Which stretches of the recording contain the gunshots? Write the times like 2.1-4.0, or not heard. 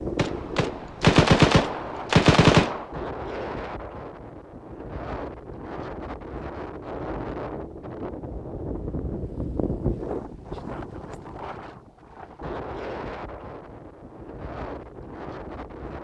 0.1-2.9.